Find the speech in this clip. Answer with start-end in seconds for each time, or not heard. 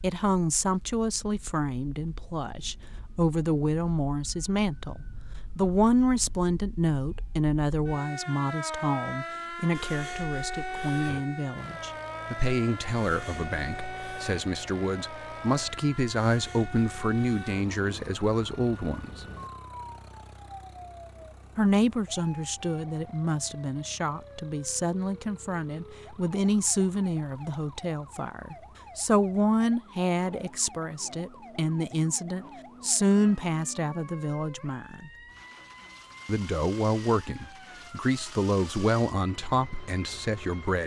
0.0-19.2, 21.6-35.1, 36.2-40.8.